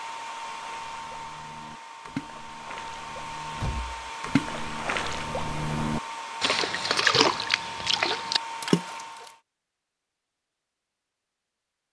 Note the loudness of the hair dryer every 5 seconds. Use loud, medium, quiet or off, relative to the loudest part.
loud, loud, off.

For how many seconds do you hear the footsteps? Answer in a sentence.
You can't hear the footsteps here.